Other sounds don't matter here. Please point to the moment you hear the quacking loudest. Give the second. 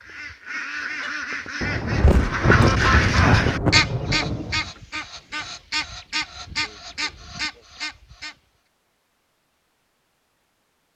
3 s.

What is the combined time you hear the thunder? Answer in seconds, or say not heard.
3 s.